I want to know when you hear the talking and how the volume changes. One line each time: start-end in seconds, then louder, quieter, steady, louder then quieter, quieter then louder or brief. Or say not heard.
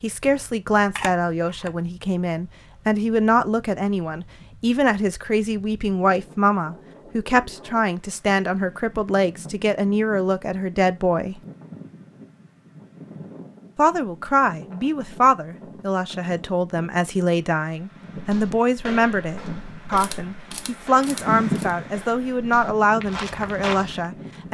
0.0-11.4 steady
13.8-24.4 steady.